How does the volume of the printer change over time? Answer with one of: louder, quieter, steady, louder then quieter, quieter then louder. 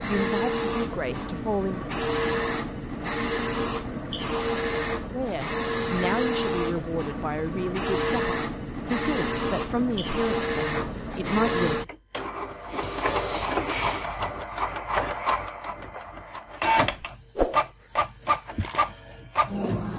steady.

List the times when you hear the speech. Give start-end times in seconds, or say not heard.
0.1-1.8, 5.1-11.8.